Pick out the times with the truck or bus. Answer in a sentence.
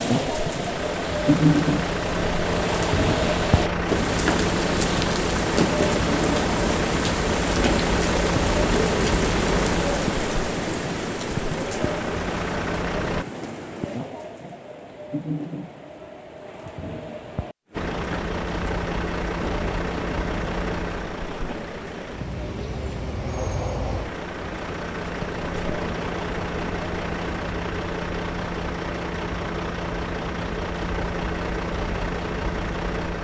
The truck or bus can be heard from 0.1 to 13.2 s and from 17.7 to 33.1 s.